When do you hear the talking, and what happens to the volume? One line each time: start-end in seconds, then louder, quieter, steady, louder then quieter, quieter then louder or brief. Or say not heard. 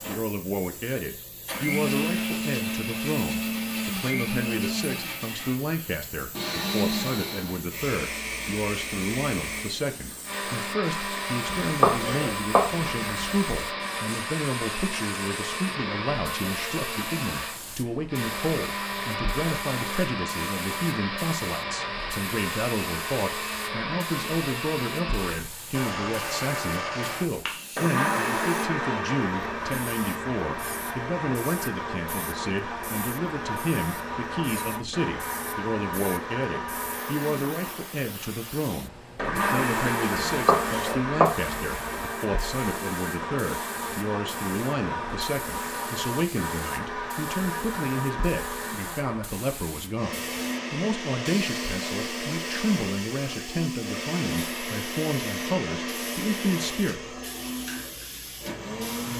0.1-57.1 steady.